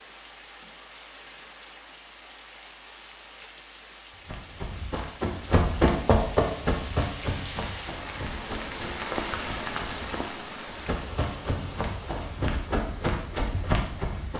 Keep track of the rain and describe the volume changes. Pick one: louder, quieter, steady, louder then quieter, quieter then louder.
louder then quieter.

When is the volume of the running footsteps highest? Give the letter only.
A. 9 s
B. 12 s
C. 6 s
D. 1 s
C.